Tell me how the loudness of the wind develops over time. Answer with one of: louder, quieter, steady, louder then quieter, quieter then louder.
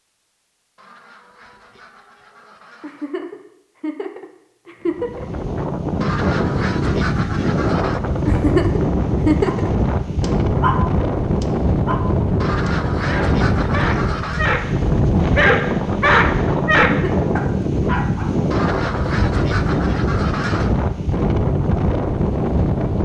steady.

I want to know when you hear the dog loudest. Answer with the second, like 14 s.
16 s.